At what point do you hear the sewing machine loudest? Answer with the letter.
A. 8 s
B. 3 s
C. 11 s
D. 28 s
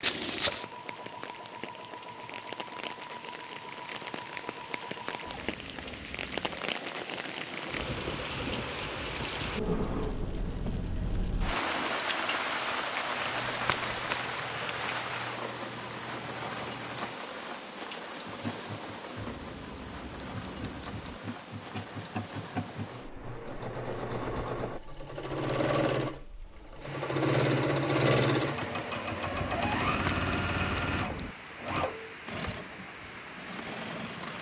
D.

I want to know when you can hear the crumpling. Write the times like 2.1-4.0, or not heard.
0.0-0.7, 13.3-14.2, 29.9-30.3.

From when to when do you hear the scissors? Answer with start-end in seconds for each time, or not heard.
5.2-6.7, 19.1-21.2, 29.3-31.4.